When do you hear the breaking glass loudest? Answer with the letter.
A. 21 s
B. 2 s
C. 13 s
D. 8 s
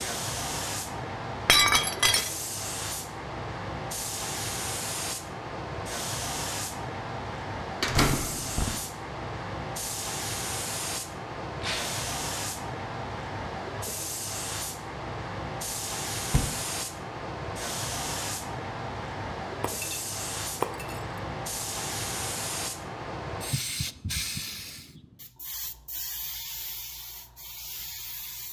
B.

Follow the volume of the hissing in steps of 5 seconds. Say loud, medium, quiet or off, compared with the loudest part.
loud, loud, loud, loud, loud, medium.